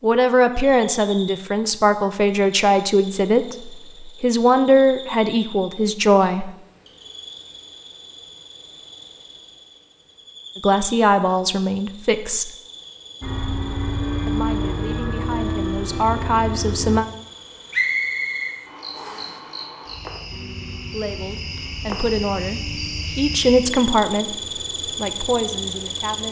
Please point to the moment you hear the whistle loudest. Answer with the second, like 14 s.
18 s.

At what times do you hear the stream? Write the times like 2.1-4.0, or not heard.
not heard.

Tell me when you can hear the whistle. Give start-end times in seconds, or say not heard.
17.7-19.3.